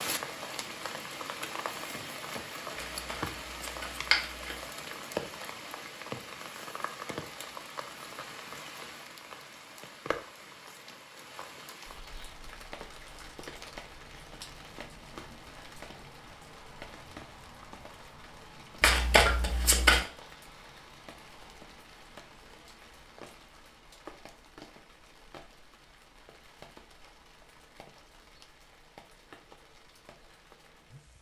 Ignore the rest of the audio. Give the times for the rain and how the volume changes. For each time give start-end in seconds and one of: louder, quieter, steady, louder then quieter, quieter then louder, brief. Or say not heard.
0.0-31.1 quieter.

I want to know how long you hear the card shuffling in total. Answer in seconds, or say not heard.
3 s.